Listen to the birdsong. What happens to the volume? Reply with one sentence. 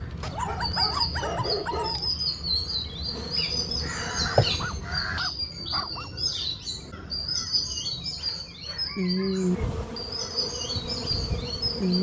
The volume of the birdsong stays about the same.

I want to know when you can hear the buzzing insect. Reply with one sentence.
You can hear the buzzing insect from 0.0 to 4.8 s and from 9.4 to 11.9 s.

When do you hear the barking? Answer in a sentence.
The barking can be heard from 0.2 to 2.1 s, from 4.4 to 6.1 s and from 8.2 to 9.7 s.